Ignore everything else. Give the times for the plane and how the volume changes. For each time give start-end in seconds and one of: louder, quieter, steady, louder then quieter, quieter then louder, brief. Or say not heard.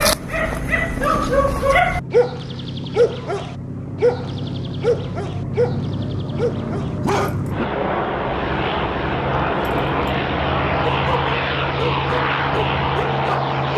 0.0-13.7 louder.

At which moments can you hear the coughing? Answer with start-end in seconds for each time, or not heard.
not heard.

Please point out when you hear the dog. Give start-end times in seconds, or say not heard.
0.0-7.4, 10.8-13.7.